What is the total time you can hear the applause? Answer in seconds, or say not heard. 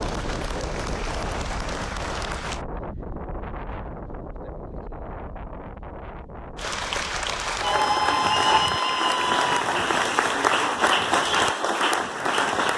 9 s.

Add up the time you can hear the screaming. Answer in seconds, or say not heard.
2 s.